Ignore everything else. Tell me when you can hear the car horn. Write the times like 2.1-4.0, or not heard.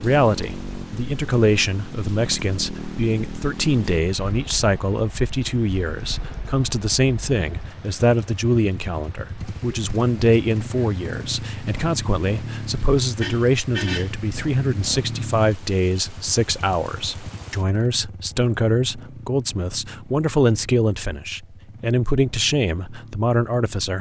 13.2-14.2.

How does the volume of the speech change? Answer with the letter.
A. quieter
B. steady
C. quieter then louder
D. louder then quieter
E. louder
B.